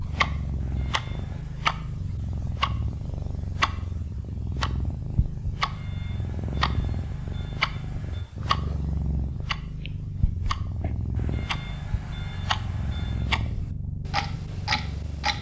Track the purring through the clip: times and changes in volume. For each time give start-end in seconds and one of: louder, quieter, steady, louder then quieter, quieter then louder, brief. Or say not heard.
0.0-15.3 steady.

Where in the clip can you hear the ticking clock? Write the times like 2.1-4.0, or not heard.
0.0-15.3.